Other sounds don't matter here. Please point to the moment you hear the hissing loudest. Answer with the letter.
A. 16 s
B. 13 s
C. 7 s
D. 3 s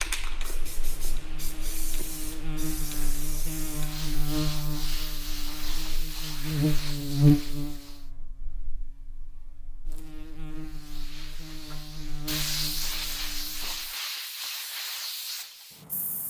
B.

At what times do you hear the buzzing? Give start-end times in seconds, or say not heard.
0.2-13.9.